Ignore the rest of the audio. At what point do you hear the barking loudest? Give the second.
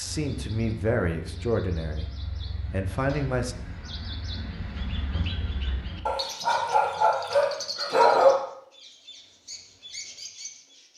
8 s.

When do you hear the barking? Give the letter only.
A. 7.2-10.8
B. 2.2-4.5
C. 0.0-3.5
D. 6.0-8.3
D.